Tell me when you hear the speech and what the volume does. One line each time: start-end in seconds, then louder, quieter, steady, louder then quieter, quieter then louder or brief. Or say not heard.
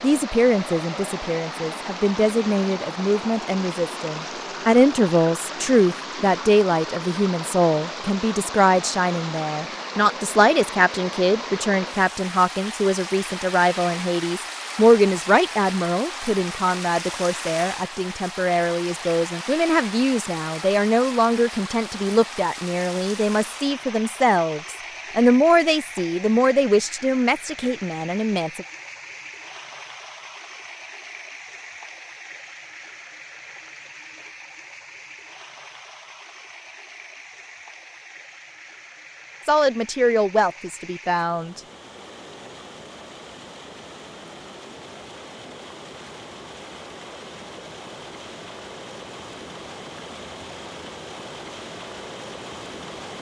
0.0-28.6 steady
39.5-41.6 brief.